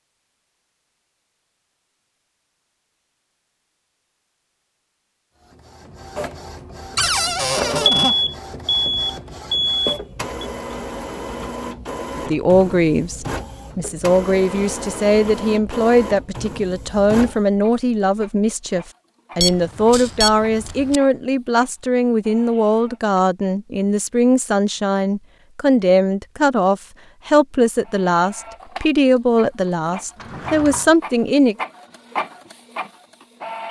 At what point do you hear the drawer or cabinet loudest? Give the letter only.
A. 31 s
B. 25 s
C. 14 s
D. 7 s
D.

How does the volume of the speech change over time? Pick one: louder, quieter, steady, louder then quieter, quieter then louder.
steady.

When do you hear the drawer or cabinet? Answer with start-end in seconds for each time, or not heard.
7.0-8.2, 30.1-30.9.